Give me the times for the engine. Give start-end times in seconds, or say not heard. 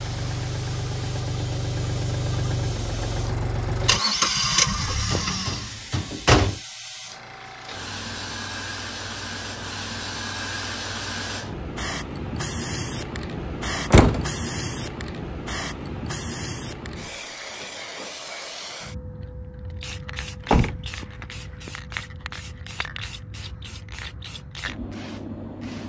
0.0-5.8.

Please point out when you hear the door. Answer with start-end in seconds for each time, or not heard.
5.1-6.5, 13.9-14.3, 20.4-21.7.